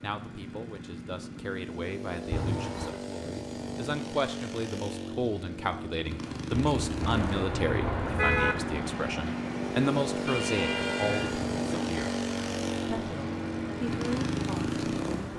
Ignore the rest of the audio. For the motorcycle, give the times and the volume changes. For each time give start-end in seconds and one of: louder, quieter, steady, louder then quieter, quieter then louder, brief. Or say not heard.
0.0-15.3 louder.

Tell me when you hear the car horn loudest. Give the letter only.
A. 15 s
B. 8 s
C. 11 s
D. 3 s
B.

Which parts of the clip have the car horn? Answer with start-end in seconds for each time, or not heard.
2.3-3.0, 6.5-8.6, 10.2-11.4.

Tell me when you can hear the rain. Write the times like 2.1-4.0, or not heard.
7.0-15.3.